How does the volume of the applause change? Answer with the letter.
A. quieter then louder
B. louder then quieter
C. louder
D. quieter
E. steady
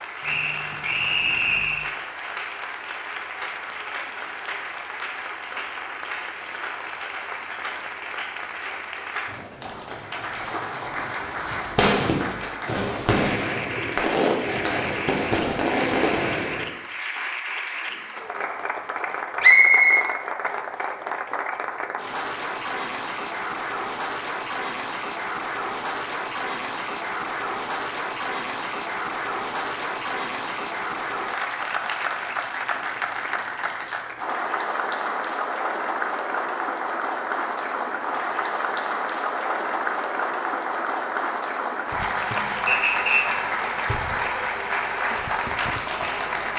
C.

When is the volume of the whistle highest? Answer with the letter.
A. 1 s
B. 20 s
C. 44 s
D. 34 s
B.